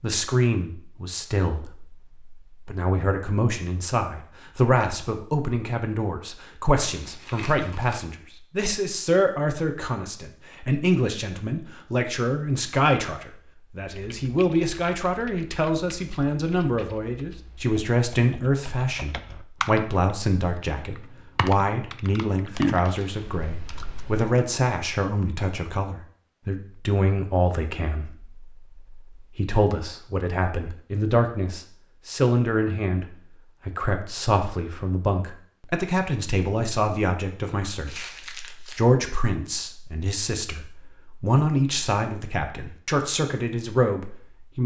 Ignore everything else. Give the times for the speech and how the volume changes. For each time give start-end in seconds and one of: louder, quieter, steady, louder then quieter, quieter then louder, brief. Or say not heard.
0.0-44.6 steady.